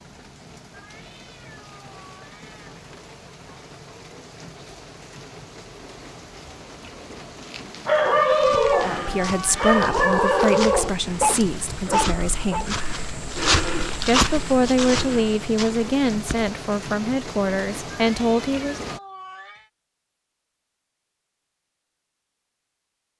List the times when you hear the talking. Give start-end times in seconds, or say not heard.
8.8-12.8, 14.1-18.9.